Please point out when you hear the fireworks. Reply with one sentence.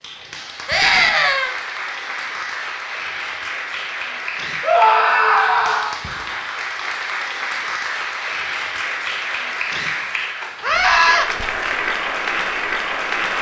The fireworks can't be heard in this clip.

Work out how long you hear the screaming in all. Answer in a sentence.
You can hear the screaming for 3 seconds altogether.